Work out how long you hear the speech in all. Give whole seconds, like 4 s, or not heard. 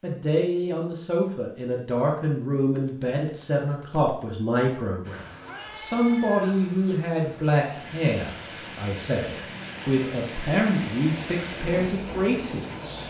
13 s.